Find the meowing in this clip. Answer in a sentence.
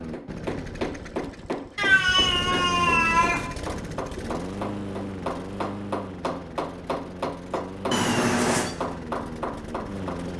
You can hear the meowing from 1.8 to 3.5 s and from 7.9 to 8.8 s.